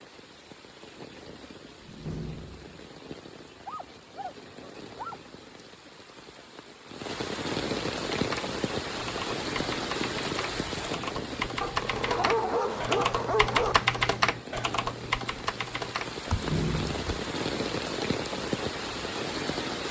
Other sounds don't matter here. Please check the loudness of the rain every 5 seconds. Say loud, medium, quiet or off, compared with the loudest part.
quiet, loud, loud, loud.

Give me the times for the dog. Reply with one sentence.
The dog can be heard from 3.6 to 5.2 s and from 11.6 to 13.9 s.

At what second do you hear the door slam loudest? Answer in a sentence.
The volume of the door slam peaks at 17 seconds.